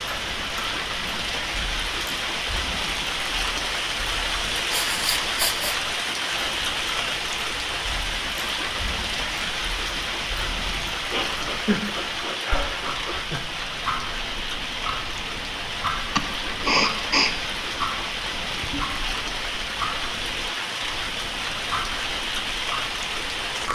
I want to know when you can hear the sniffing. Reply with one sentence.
The sniffing can be heard from 4.7 to 5.8 s, from 11.1 to 13.4 s and from 16.1 to 17.4 s.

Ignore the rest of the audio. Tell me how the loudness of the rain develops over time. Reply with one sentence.
The loudness of the rain stays about the same.